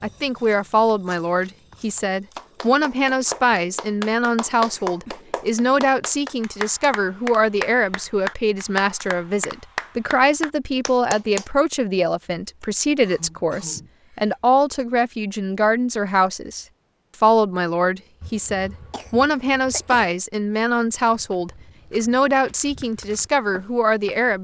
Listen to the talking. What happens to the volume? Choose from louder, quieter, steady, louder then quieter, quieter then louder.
steady.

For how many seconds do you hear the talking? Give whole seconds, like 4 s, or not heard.
24 s.